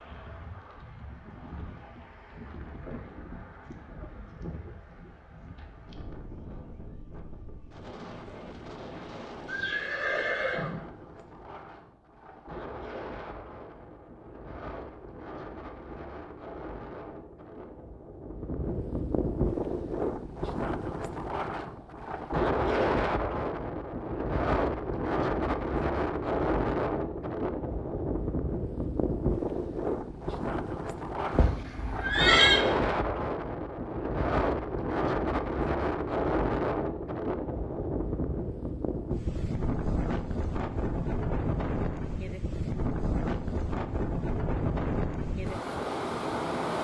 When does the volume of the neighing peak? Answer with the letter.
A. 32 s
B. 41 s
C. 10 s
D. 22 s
A.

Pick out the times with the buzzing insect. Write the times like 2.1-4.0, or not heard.
not heard.